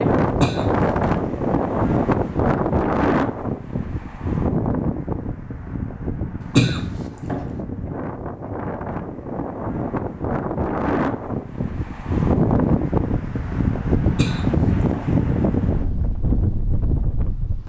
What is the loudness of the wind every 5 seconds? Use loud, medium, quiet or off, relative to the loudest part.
loud, medium, loud, loud.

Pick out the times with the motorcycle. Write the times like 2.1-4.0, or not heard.
not heard.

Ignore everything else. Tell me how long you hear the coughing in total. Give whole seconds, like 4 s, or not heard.
3 s.